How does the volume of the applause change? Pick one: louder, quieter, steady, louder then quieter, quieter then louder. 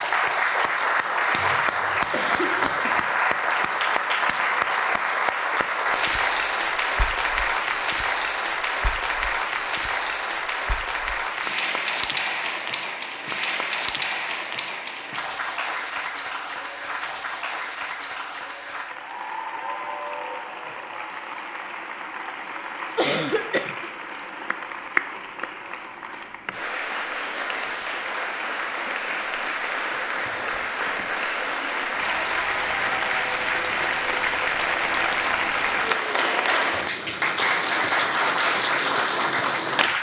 quieter then louder.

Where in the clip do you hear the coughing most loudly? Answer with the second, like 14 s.
23 s.